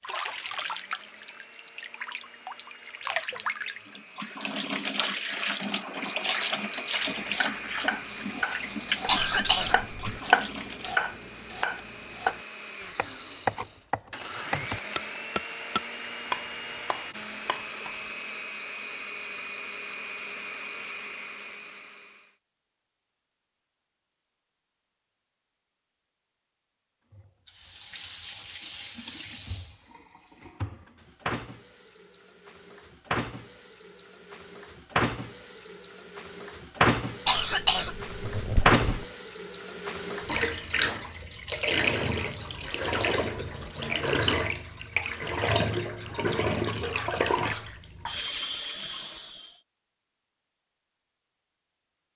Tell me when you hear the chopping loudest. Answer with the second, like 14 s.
10 s.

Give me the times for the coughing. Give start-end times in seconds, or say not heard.
9.1-10.2, 37.2-39.0.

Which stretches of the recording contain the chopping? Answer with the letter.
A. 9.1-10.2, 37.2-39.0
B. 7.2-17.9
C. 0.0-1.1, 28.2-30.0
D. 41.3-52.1
B.